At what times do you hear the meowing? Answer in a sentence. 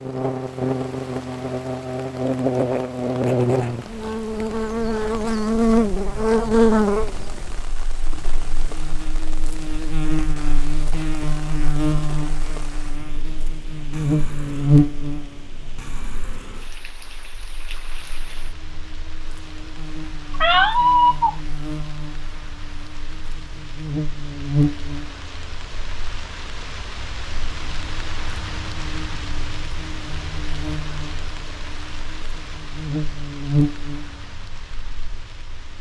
You can hear the meowing from 20.3 to 21.4 s.